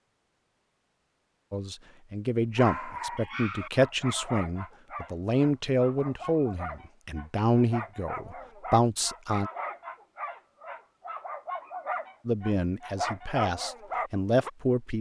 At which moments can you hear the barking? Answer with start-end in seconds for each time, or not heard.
2.5-14.5.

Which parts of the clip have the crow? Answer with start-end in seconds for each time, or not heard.
not heard.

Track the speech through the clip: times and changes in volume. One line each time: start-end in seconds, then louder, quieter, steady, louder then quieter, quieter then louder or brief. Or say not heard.
1.5-9.5 steady
12.2-14.9 brief.